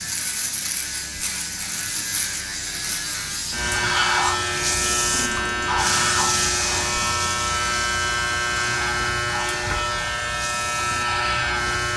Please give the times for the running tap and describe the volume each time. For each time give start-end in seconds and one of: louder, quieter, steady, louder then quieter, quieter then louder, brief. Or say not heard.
0.0-11.9 louder then quieter.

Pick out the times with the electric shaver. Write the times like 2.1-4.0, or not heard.
0.0-11.9.